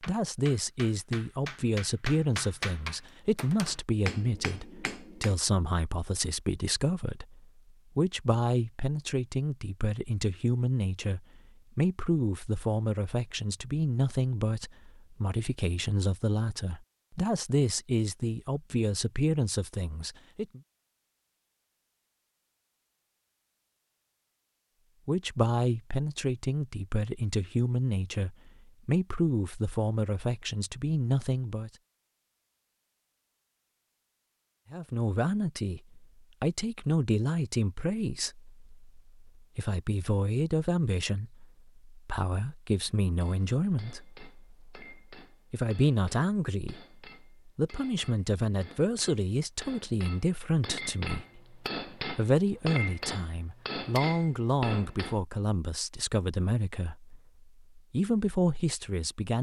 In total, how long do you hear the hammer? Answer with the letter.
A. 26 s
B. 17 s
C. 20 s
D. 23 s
B.